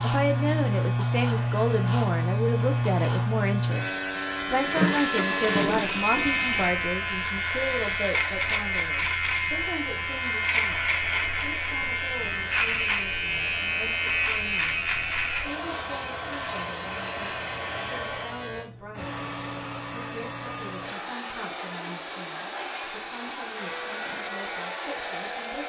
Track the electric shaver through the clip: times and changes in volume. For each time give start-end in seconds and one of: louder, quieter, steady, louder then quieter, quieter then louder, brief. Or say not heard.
0.0-18.7 quieter
23.5-25.6 brief.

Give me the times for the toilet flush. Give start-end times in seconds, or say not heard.
4.5-6.8.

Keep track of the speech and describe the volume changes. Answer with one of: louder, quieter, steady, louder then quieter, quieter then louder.
quieter.